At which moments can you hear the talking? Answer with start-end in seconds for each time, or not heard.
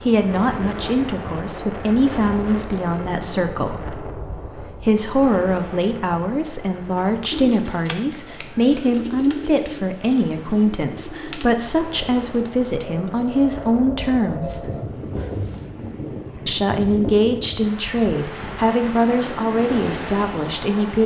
0.0-14.7, 16.4-21.0.